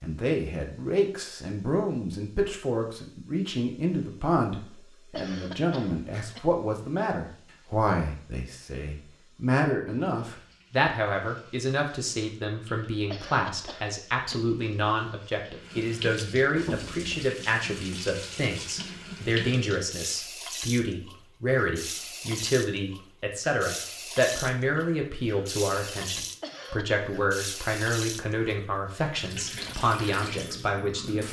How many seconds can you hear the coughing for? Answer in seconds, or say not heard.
3 s.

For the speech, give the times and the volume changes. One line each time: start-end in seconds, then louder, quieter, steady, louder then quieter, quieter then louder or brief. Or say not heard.
0.0-31.2 steady.